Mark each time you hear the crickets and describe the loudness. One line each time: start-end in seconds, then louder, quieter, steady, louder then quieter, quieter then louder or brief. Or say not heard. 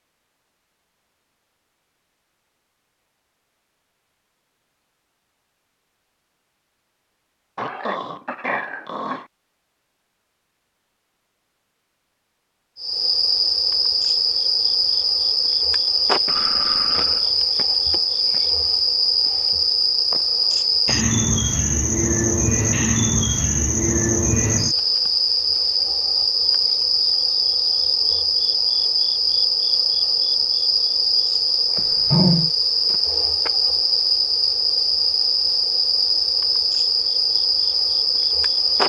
12.8-38.8 steady.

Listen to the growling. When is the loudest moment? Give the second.
32 s.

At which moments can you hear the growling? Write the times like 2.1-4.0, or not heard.
7.5-9.2, 16.2-17.3, 31.8-32.5.